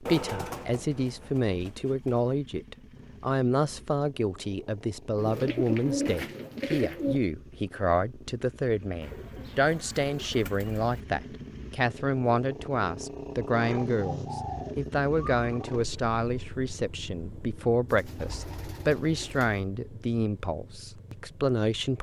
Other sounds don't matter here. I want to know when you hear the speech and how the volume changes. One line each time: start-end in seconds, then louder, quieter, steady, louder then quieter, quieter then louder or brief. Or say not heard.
0.0-21.9 steady.